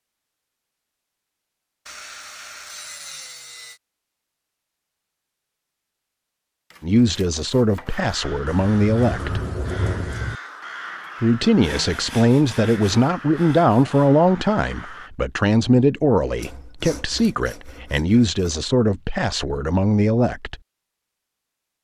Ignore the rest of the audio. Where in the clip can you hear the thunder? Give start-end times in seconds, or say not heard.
8.4-10.4.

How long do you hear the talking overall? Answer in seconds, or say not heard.
12 s.